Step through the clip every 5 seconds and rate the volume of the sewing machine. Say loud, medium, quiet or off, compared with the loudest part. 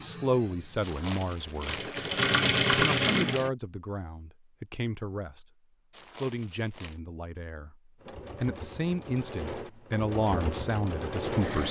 loud, quiet, medium.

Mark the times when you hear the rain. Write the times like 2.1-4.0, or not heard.
not heard.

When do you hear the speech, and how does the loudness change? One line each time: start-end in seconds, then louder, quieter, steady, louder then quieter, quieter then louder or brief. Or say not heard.
0.0-1.8 brief
2.6-5.5 brief
6.1-11.6 quieter then louder.